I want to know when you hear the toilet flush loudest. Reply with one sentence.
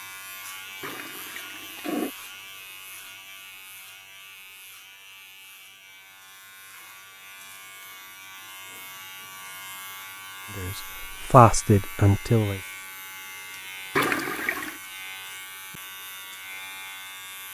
The loudest moment of the toilet flush is at 14 seconds.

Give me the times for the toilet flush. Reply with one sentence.
You can hear the toilet flush from 0.8 to 2.1 s and from 13.9 to 14.8 s.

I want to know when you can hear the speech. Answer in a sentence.
You can hear the speech from 10.6 to 12.6 s.